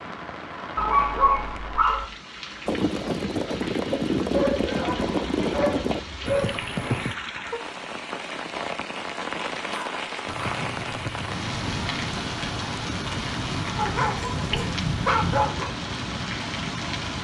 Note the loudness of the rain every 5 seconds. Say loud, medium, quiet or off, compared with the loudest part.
medium, loud, loud, loud.